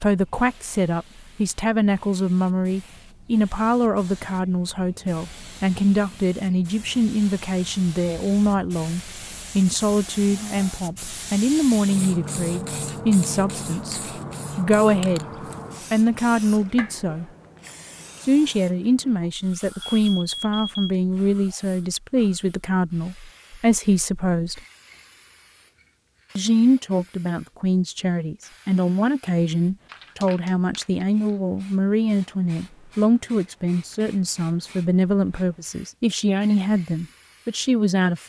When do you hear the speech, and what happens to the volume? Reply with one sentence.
The speech can be heard from 0.0 to 15.3 s, at a steady volume; briefly from 15.9 to 17.2 s; from 18.2 to 24.6 s, at a steady volume; and from 26.4 to 38.2 s, at a steady volume.